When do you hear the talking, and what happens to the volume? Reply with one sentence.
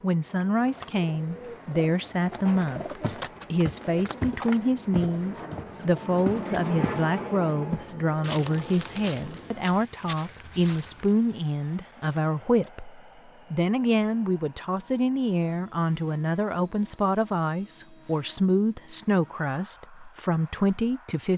The talking can be heard from 0.0 to 21.3 s, at a steady volume.